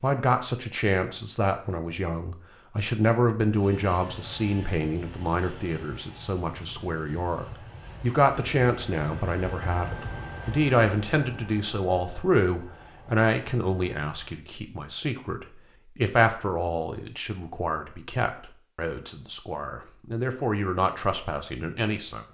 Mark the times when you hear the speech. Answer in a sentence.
You can hear the speech from 0.0 to 22.2 s.